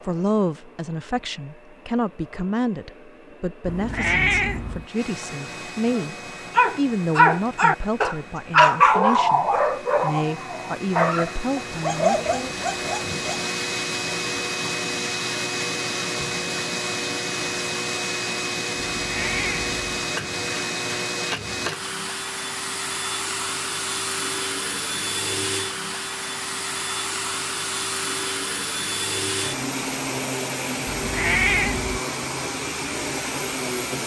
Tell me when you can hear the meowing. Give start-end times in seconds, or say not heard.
3.6-4.8, 18.9-19.9, 30.9-32.0.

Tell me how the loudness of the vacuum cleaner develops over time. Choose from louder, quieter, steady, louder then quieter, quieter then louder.
louder.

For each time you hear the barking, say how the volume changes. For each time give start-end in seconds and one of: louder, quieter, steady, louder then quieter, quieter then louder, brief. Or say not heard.
5.9-13.4 quieter.